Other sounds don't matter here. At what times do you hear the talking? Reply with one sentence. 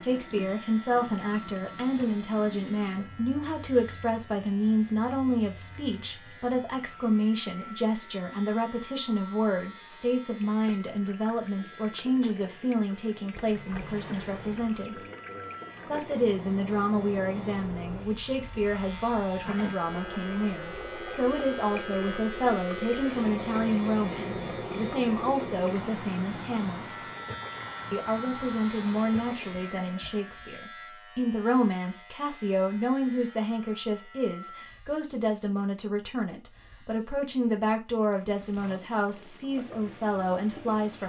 The talking can be heard from 0.0 to 14.9 s, from 15.8 to 26.9 s and from 27.9 to 41.0 s.